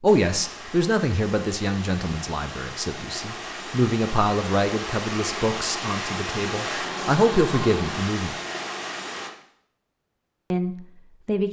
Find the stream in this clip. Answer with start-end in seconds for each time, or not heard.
0.0-9.3.